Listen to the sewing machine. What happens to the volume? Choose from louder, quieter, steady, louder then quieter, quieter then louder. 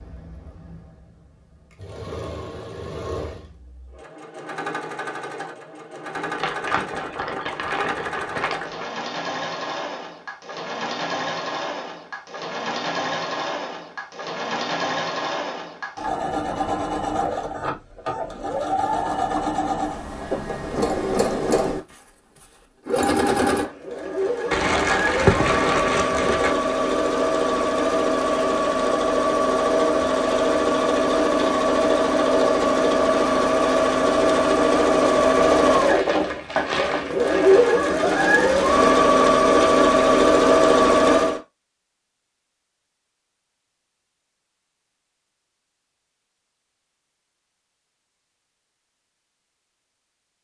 louder.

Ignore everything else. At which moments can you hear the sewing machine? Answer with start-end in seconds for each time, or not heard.
0.0-41.4.